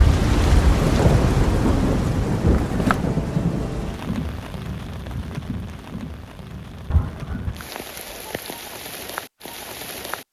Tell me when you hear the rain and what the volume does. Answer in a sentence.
The rain can be heard from 0.0 to 10.2 s, getting quieter.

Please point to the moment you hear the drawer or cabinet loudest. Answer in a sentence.
The loudest moment of the drawer or cabinet is at 3 seconds.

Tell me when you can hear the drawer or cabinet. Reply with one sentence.
You can hear the drawer or cabinet from 2.5 to 3.0 s and from 6.9 to 7.5 s.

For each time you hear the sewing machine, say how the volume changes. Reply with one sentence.
The sewing machine can't be heard in this clip.